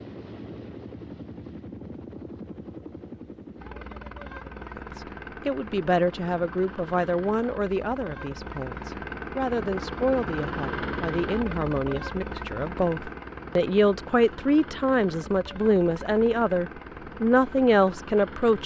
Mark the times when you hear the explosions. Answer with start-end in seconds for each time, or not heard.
not heard.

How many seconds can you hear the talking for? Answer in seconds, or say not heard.
14 s.